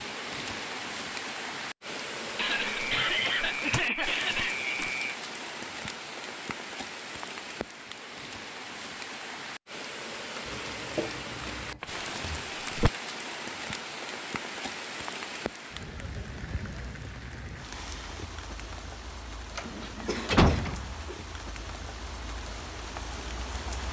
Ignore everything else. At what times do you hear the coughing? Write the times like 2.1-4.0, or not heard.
2.4-5.2, 10.4-11.8, 19.6-20.7.